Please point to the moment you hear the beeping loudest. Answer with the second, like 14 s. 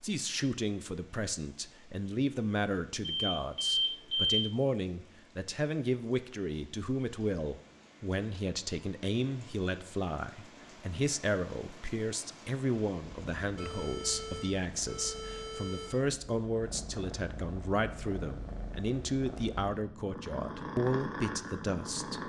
4 s.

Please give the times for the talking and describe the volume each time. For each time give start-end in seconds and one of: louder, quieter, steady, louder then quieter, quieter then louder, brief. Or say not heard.
0.0-22.2 steady.